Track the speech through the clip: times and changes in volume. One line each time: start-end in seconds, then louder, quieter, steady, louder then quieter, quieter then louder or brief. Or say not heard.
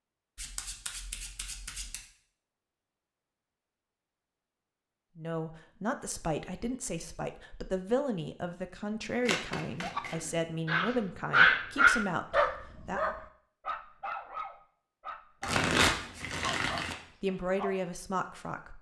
5.2-13.1 steady
17.2-18.7 brief.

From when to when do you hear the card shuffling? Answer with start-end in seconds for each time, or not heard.
0.3-2.0, 9.2-10.2, 15.4-16.9.